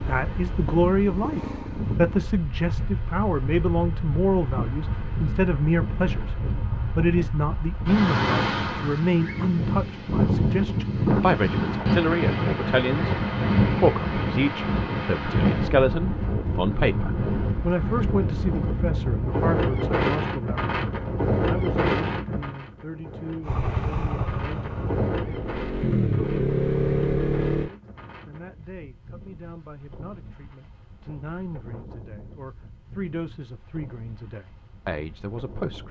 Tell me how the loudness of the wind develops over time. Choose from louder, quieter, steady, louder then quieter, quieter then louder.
louder then quieter.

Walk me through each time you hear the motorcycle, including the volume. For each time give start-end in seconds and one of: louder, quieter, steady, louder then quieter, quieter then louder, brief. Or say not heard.
0.0-2.3 brief
23.4-27.7 quieter then louder.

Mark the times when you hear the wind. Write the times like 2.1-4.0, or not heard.
0.0-35.8.